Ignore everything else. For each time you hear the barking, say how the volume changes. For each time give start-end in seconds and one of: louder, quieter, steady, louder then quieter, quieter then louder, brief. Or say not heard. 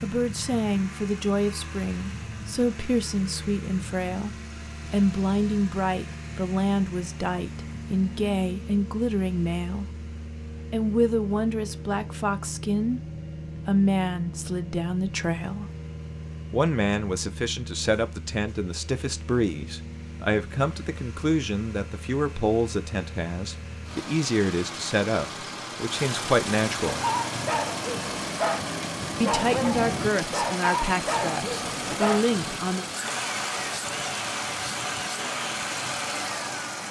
26.9-32.2 steady.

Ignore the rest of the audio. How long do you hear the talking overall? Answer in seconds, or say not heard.
29 s.